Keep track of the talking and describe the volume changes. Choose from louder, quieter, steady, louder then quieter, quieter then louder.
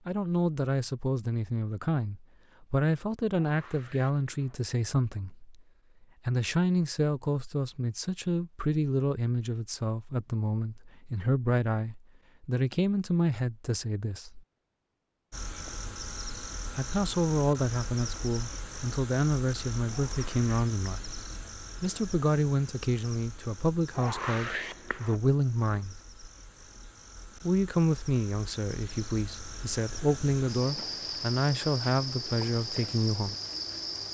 steady.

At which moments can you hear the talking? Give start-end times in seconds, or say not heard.
0.1-5.5, 6.2-14.4, 16.8-21.0, 21.8-25.9, 27.4-33.4.